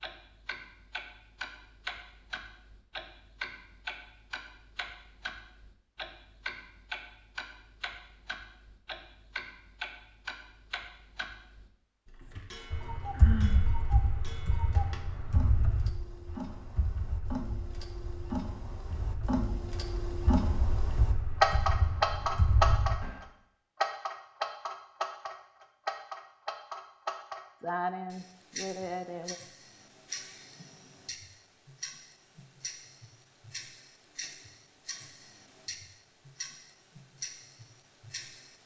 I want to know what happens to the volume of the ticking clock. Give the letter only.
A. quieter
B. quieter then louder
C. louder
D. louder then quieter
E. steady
D.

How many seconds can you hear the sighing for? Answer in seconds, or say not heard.
2 s.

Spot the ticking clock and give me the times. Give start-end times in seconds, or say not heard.
0.0-38.6.